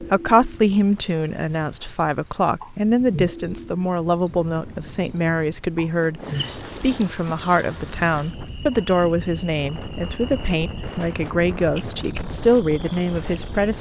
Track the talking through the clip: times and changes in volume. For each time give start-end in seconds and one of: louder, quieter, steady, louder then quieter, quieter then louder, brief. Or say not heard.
0.0-13.7 steady.